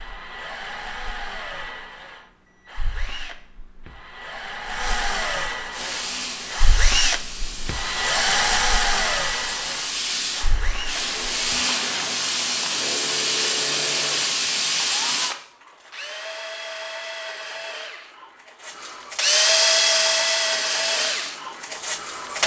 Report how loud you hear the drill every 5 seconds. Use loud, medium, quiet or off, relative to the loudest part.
medium, loud, medium, loud, loud.